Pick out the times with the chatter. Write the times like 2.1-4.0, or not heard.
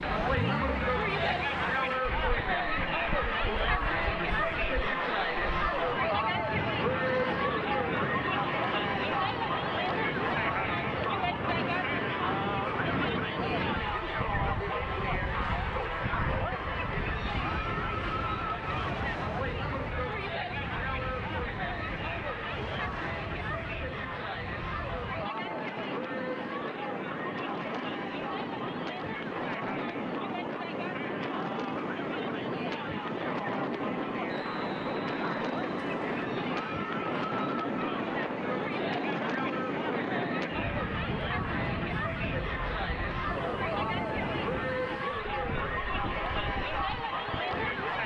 0.0-48.0.